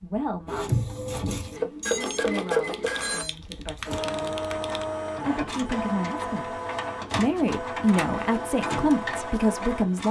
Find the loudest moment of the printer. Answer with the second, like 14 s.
2 s.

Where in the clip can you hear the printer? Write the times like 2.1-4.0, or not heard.
0.0-10.0.